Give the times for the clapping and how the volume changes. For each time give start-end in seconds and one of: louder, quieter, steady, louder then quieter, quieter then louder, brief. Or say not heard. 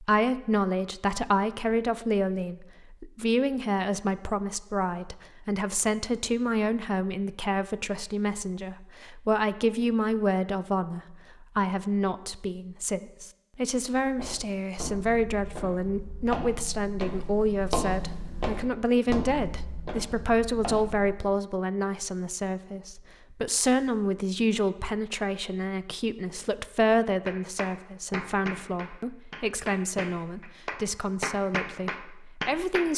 27.2-32.9 quieter then louder.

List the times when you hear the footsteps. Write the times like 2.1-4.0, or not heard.
14.2-21.2.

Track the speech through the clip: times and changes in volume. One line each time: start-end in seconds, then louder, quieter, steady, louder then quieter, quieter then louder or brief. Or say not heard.
0.0-32.9 steady.